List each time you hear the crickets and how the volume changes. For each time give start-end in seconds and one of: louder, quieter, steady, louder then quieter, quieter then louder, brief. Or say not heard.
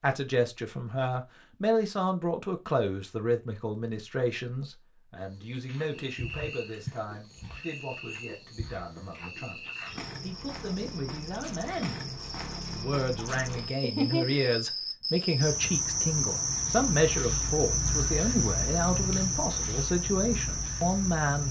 5.3-21.4 louder.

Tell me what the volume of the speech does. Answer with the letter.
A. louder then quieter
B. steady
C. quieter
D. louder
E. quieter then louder
E.